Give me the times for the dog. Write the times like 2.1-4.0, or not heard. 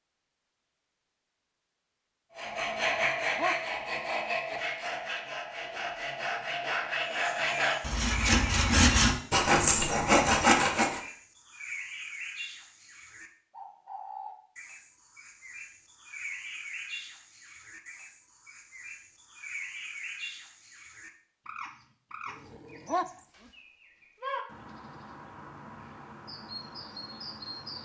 2.9-3.5, 22.4-23.1.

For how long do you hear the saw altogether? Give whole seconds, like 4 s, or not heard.
9 s.